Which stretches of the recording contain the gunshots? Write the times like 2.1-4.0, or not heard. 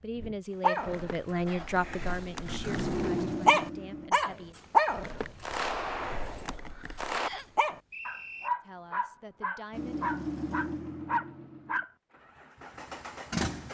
5.4-7.3.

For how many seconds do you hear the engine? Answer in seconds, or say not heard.
8 s.